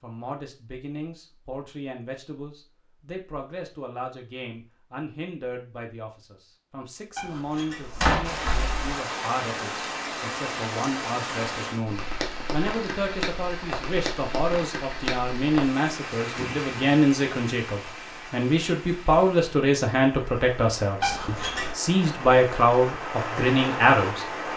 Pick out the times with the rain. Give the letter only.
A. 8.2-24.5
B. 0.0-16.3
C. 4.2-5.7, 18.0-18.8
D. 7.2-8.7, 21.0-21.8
A.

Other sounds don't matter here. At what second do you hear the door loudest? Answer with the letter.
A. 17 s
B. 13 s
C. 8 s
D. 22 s
C.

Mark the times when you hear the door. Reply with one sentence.
The door can be heard from 7.2 to 8.7 s and from 21.0 to 21.8 s.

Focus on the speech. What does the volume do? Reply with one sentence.
The loudness of the speech goes up.